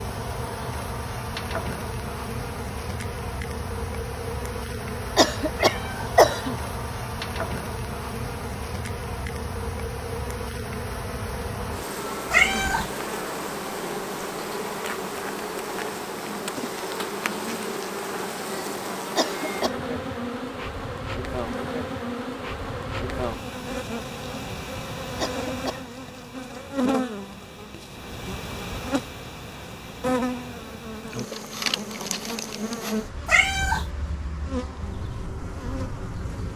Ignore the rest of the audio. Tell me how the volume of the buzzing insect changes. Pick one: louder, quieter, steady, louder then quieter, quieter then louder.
steady.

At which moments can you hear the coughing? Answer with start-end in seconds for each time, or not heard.
5.2-6.5, 19.1-19.8, 25.1-25.8.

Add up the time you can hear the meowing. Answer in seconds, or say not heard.
2 s.